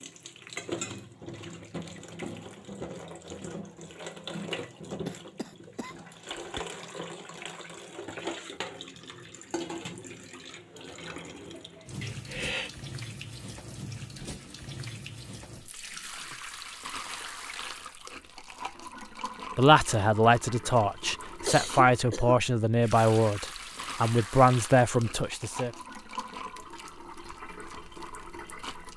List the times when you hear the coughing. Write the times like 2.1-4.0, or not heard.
5.0-6.6, 12.0-12.7, 21.4-22.4.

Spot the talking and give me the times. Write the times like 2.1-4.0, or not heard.
19.6-25.7.